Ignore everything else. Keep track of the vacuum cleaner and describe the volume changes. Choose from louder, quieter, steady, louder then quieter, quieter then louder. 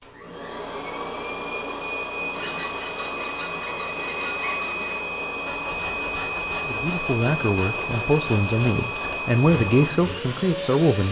steady.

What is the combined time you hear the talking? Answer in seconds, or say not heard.
4 s.